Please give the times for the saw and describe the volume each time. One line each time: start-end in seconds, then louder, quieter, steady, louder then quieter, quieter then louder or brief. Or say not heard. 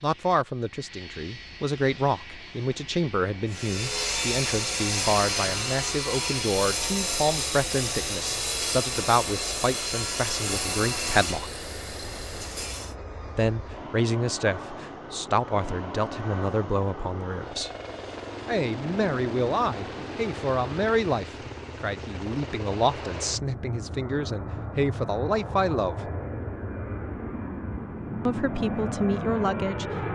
3.5-12.9 quieter.